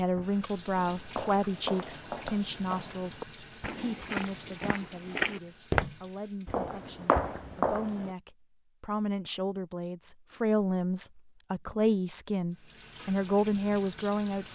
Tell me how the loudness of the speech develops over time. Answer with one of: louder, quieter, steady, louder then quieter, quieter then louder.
quieter then louder.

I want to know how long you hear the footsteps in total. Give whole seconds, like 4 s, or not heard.
7 s.